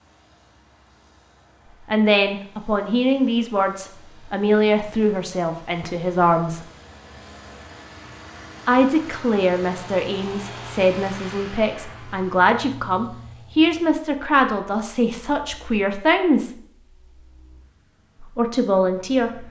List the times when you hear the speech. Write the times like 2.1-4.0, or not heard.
1.9-6.7, 8.7-16.5, 18.2-19.4.